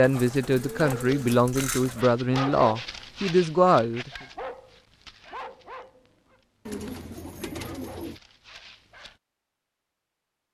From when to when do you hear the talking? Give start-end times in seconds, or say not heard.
0.0-4.1.